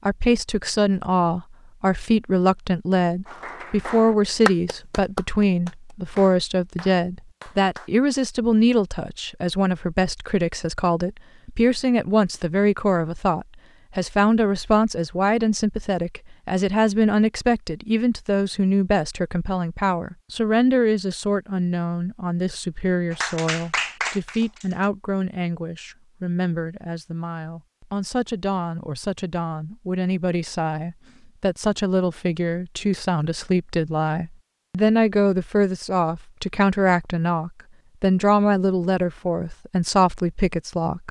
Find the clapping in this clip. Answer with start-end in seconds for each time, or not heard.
3.2-7.9, 23.1-24.9.